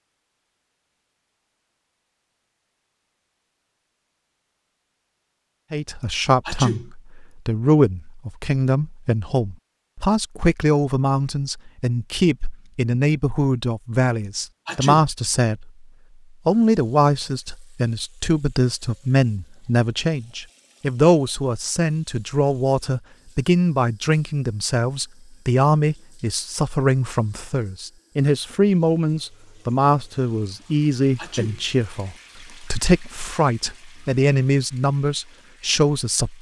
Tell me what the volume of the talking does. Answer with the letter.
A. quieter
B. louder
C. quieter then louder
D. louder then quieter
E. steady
E.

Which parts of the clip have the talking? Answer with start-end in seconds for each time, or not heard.
5.7-15.8, 16.4-36.3.